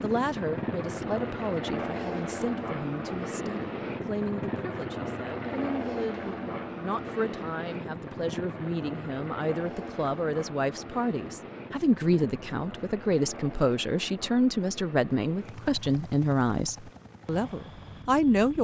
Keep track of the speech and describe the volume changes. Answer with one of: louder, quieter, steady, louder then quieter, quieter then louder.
louder.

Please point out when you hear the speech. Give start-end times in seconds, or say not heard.
0.0-18.5.